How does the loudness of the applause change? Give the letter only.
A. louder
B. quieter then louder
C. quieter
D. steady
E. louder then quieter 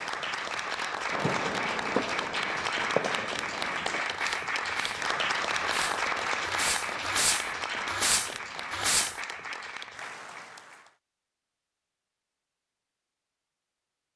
C.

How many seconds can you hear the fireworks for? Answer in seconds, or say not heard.
8 s.